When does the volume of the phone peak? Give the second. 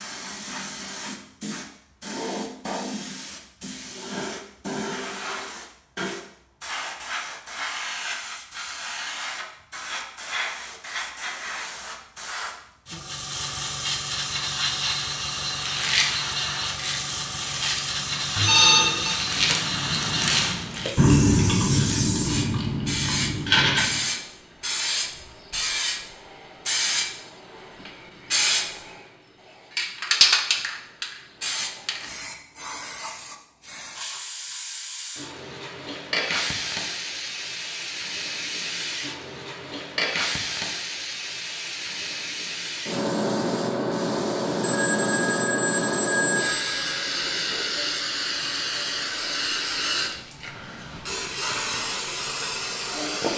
19 s.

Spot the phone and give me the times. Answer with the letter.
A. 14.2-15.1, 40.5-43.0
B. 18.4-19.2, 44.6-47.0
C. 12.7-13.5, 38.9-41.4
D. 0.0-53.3
B.